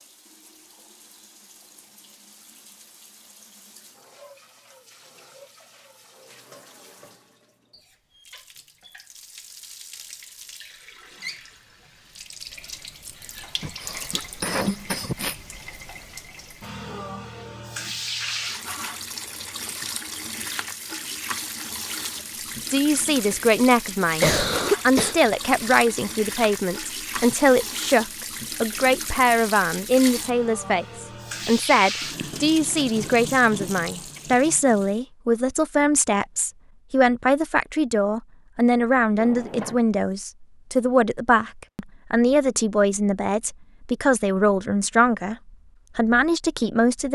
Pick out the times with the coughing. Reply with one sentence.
The coughing can be heard from 13.6 to 15.3 s and from 24.2 to 25.1 s.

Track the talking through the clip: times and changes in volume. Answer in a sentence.
You can hear the talking from 22.7 to 45.4 s, at a steady volume; and briefly from 46.0 to 47.0 s.